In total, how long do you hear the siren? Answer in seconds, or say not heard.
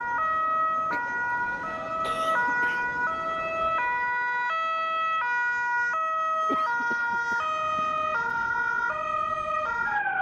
10 s.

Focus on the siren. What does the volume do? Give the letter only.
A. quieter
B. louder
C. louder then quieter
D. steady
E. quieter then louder
D.